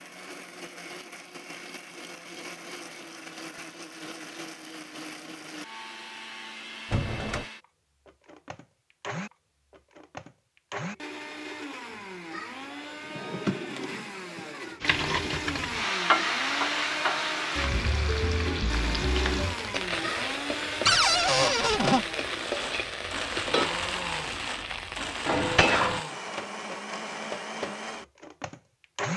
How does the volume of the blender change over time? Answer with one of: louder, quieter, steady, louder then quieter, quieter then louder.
louder.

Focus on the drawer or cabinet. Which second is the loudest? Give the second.
21 s.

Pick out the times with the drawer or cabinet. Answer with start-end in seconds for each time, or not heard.
6.9-7.5, 13.1-15.4, 20.9-22.1.